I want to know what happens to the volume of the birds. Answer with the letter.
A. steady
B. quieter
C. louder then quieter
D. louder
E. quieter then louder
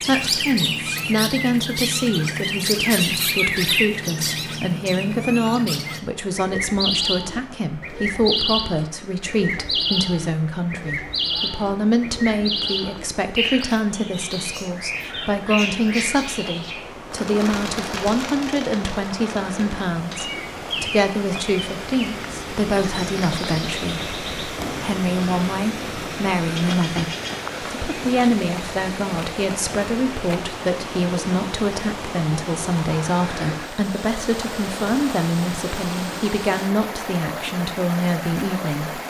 B.